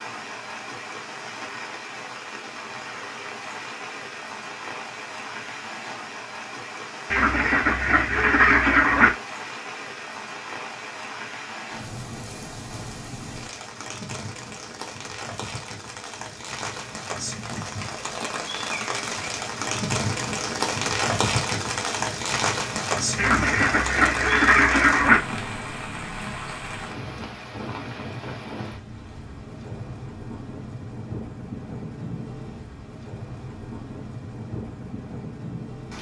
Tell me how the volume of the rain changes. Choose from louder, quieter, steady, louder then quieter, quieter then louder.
louder then quieter.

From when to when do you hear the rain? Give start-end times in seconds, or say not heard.
0.0-35.9.